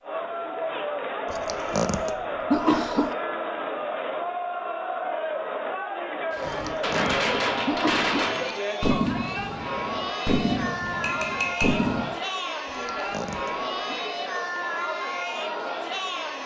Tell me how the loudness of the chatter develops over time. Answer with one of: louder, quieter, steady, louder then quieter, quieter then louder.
steady.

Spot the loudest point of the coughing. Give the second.
3 s.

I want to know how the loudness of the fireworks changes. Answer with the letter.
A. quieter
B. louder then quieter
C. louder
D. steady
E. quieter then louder
A.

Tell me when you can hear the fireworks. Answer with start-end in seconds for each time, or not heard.
6.3-12.1.